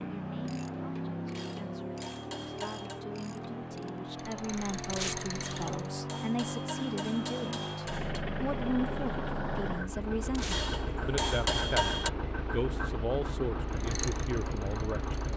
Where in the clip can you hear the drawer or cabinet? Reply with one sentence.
You can't hear the drawer or cabinet here.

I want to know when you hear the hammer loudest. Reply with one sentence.
The volume of the hammer peaks at 12 seconds.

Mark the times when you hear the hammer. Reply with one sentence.
You can hear the hammer from 1.4 to 3.0 s, from 5.4 to 8.2 s and from 10.5 to 12.1 s.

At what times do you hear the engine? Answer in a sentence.
The engine can be heard from 0.0 to 15.3 s.